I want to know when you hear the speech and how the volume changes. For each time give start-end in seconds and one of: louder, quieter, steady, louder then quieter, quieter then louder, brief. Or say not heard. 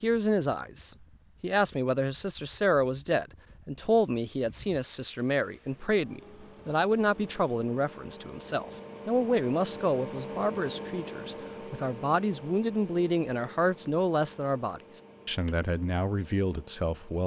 0.0-17.2 steady.